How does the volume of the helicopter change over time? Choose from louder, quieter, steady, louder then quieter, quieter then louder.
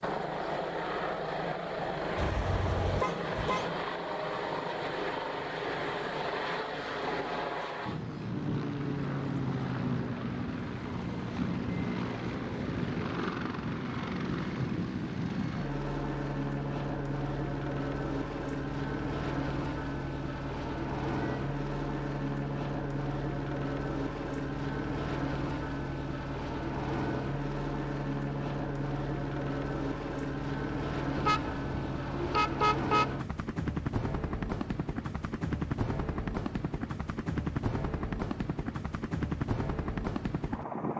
steady.